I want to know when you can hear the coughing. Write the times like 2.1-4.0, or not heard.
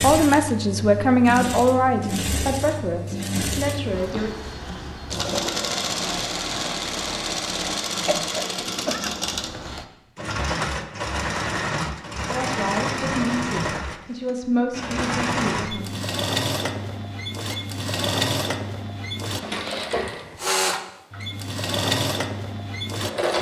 7.9-9.1.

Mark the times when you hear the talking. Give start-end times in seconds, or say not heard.
0.0-4.3, 12.3-15.9.